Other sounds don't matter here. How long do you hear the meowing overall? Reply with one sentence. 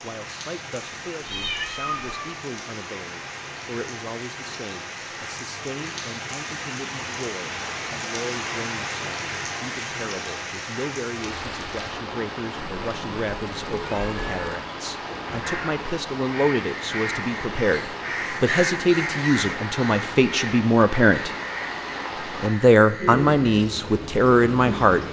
The meowing can be heard for 3 seconds in total.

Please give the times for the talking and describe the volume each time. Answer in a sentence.
You can hear the talking from 0.0 to 21.4 s, getting louder; and briefly from 22.4 to 25.0 s.